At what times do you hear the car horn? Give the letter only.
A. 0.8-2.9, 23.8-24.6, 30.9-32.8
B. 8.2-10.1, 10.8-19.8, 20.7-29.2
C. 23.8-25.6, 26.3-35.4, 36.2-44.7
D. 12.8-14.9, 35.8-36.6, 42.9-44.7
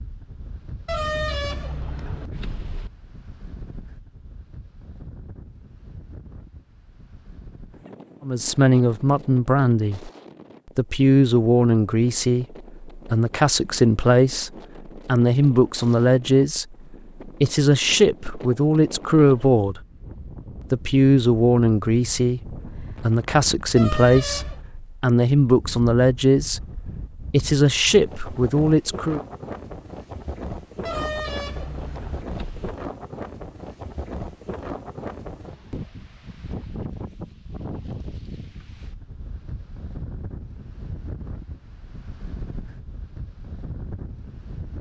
A.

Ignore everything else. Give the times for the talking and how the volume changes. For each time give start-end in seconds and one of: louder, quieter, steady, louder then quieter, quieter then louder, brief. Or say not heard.
8.2-10.1 brief
10.8-19.8 steady
20.7-29.2 steady.